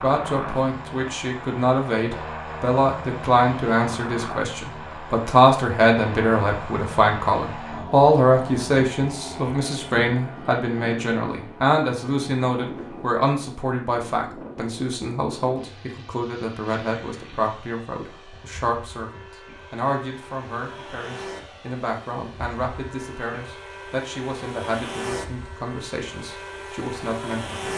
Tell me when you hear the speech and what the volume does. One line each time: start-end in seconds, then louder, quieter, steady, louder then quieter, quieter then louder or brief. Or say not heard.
0.0-27.7 quieter.